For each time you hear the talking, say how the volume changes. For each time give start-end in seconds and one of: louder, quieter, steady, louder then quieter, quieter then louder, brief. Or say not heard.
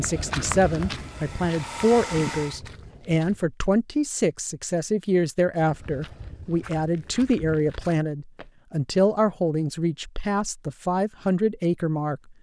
0.0-12.2 steady.